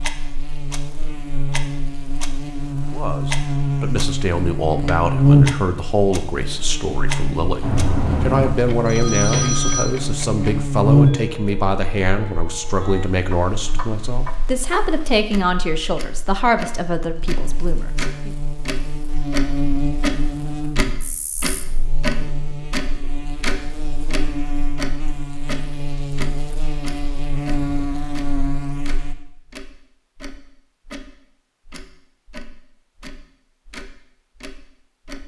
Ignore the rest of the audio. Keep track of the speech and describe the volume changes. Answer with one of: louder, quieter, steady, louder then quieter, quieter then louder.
steady.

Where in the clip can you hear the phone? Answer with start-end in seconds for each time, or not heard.
7.6-9.8.